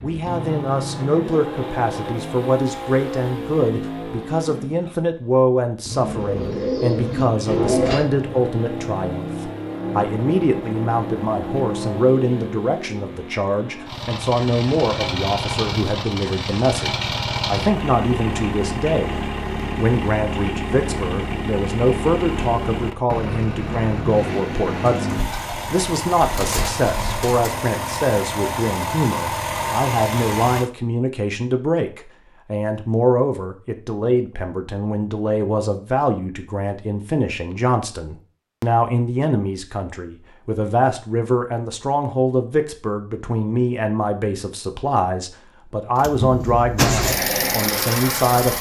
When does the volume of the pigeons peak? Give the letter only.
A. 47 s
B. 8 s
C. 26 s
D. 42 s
B.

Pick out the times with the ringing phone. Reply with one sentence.
The ringing phone can't be heard in this clip.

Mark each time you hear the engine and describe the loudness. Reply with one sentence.
You can hear the engine from 0.0 to 30.7 s, at a steady volume; and briefly from 46.0 to 48.5 s.